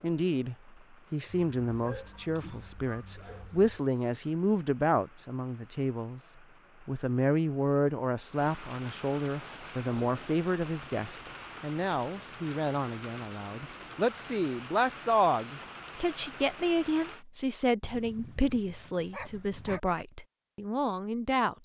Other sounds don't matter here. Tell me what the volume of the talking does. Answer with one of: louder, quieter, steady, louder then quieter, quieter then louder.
steady.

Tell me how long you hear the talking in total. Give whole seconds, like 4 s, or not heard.
21 s.